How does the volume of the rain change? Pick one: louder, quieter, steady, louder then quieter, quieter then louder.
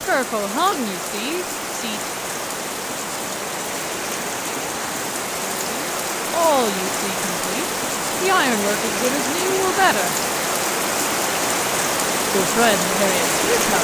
louder.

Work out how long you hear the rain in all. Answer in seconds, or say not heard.
14 s.